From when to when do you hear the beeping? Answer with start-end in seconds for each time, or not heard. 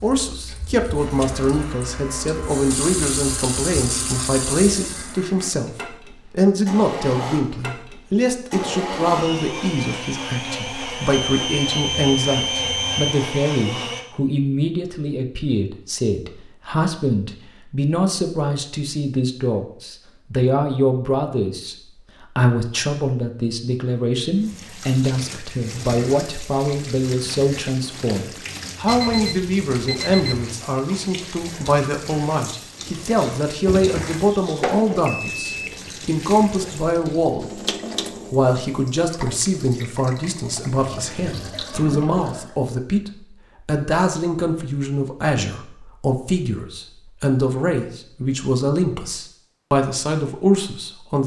11.1-13.2, 28.9-30.4, 35.0-35.9.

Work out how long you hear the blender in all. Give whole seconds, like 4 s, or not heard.
14 s.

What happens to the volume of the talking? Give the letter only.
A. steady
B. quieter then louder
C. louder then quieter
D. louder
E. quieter
A.